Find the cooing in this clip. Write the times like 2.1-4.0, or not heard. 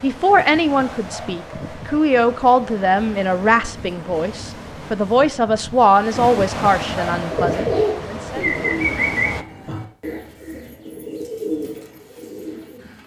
7.1-13.0.